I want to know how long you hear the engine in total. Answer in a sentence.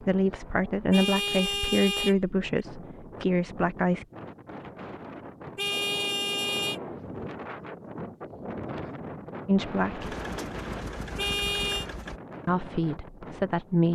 The engine can be heard for 2 seconds in total.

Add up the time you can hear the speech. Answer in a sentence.
The speech can be heard for 6 seconds in total.